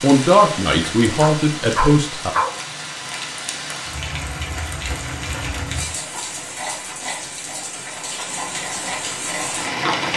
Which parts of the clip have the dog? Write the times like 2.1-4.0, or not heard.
1.2-2.5.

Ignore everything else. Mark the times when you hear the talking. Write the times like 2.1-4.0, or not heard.
0.0-2.4.